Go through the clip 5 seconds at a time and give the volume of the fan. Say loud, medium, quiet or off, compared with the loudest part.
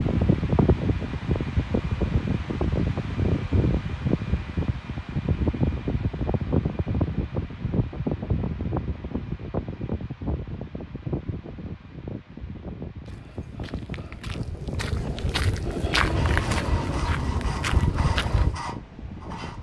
loud, loud, medium, quiet.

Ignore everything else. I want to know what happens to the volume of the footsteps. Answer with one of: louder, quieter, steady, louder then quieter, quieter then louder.
louder.